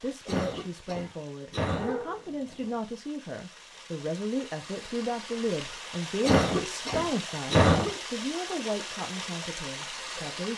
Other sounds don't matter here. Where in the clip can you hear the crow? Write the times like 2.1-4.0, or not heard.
not heard.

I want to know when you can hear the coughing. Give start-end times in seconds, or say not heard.
0.2-1.9, 6.2-8.0.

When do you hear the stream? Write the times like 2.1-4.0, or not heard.
0.0-10.5.